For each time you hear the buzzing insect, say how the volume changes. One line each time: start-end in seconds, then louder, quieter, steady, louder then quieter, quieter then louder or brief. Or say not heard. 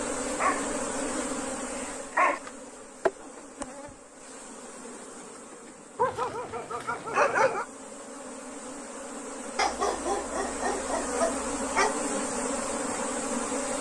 0.0-13.7 quieter then louder.